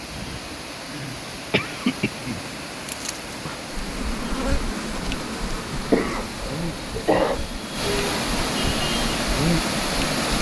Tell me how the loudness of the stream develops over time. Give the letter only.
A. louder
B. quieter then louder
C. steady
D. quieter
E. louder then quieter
A.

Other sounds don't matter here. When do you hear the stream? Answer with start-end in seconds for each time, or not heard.
0.0-10.3.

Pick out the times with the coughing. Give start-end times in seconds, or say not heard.
0.8-2.5, 5.5-7.4.